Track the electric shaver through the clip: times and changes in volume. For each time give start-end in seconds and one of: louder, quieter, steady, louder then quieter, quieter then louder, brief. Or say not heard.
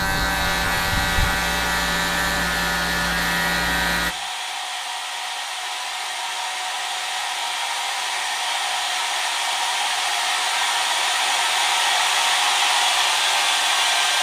0.0-4.2 steady.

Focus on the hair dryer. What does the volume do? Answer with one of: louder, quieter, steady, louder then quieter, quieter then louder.
louder.